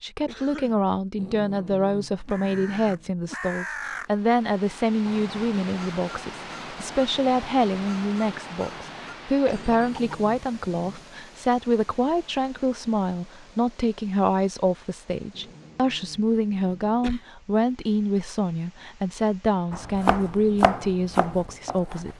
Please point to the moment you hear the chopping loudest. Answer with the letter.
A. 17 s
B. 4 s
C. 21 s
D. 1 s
C.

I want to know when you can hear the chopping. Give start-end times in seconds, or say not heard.
19.7-22.1.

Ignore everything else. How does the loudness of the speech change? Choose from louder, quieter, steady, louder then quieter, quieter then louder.
steady.